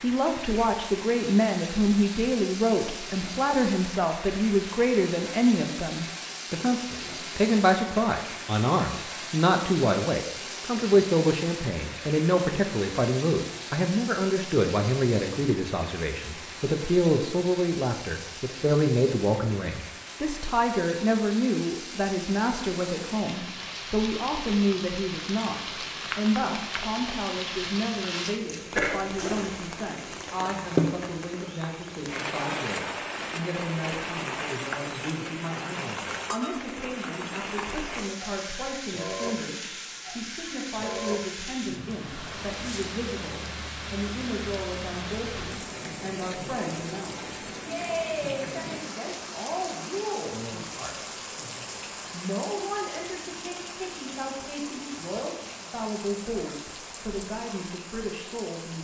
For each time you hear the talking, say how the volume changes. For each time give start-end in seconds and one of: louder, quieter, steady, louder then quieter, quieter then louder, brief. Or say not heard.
0.0-58.8 quieter.